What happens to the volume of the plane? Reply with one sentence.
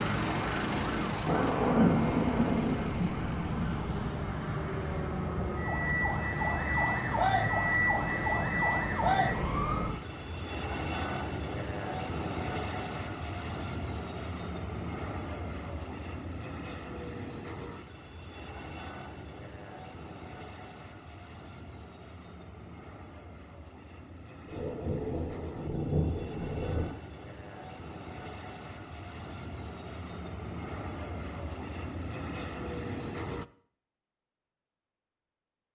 The loudness of the plane goes down, then up.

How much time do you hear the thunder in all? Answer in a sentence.
You can hear the thunder for 5 seconds altogether.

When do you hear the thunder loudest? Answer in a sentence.
The volume of the thunder peaks at 2 seconds.